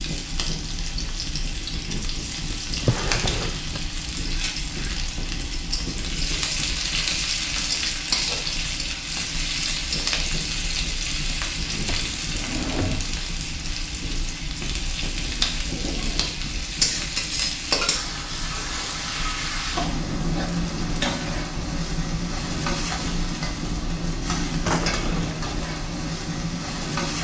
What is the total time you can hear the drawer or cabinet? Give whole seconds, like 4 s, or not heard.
3 s.